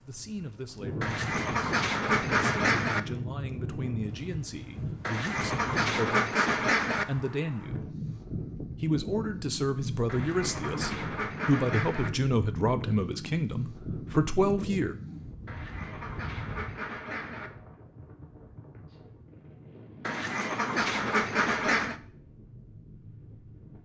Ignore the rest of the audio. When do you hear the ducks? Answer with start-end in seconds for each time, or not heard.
1.0-3.0, 5.0-7.0, 10.1-12.1, 15.4-17.5, 20.1-21.9.